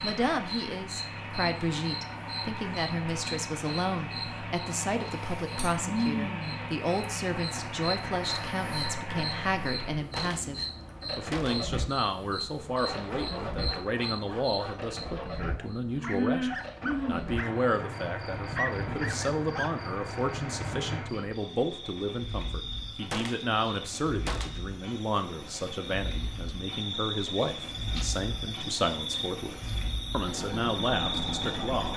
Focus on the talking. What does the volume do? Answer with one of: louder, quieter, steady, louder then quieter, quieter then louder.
steady.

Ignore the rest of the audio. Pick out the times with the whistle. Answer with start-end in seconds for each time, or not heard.
not heard.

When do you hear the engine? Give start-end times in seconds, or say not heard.
0.0-31.9.